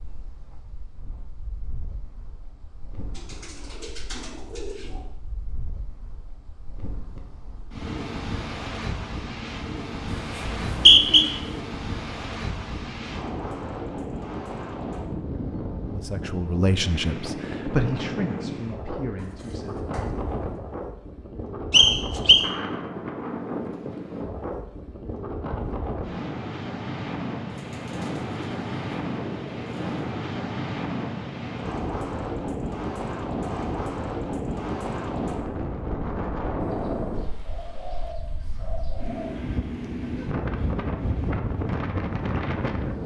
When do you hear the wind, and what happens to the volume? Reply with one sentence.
The wind can be heard from 0.0 to 43.0 s, getting louder.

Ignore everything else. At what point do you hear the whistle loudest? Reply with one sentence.
The loudest moment of the whistle is at 11 seconds.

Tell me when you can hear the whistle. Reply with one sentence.
The whistle can be heard from 10.4 to 11.2 s and from 21.7 to 22.4 s.